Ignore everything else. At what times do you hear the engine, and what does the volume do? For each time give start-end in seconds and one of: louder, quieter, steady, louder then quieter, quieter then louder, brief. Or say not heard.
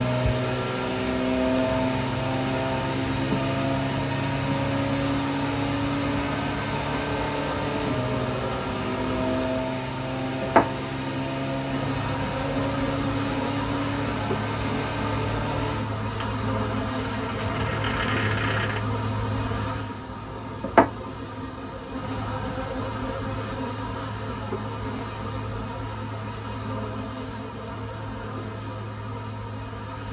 0.0-18.8 quieter.